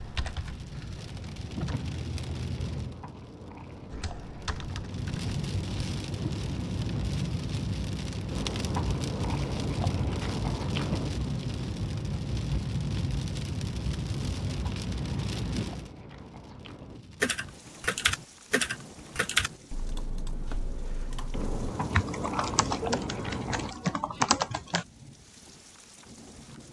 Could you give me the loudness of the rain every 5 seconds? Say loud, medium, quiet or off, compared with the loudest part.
medium, loud, loud, medium, quiet, quiet.